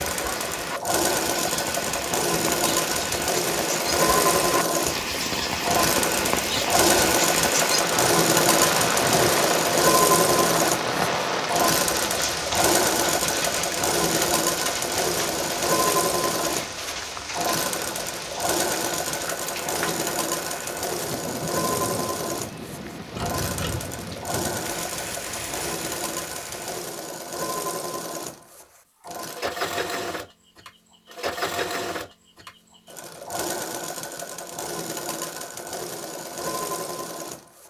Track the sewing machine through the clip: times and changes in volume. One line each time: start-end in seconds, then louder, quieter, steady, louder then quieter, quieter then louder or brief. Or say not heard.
0.0-37.6 quieter.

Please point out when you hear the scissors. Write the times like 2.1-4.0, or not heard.
23.1-23.9.